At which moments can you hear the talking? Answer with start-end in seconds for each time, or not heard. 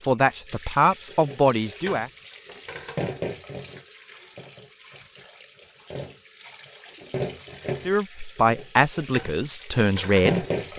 0.0-2.1, 7.8-10.4.